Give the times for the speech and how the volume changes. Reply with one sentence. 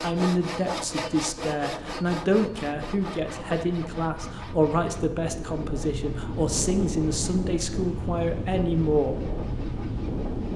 You can hear the speech from 0.0 to 9.2 s, at a steady volume.